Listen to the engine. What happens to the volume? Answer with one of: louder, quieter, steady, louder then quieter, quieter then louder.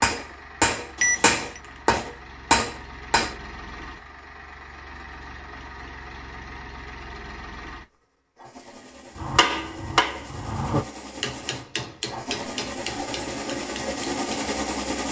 louder.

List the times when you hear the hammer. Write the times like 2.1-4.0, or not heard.
0.0-3.4, 9.2-14.5.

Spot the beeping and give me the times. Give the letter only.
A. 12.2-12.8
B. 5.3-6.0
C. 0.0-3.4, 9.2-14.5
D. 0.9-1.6
D.